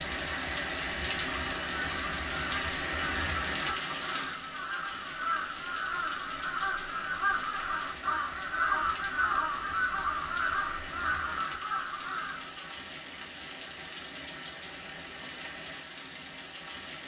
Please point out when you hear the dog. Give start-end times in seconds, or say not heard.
not heard.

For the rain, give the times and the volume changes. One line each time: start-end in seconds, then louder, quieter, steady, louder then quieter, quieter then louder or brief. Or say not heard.
0.0-17.0 quieter.